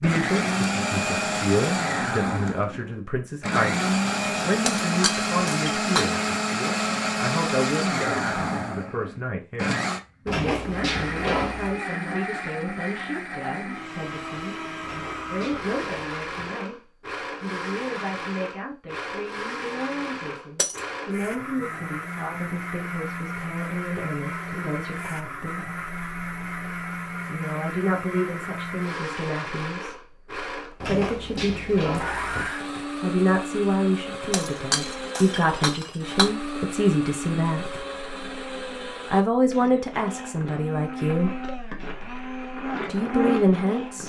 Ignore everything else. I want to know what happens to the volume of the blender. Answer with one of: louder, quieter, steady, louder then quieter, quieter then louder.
quieter.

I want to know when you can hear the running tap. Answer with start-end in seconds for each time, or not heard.
not heard.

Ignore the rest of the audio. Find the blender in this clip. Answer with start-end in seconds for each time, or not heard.
0.0-44.0.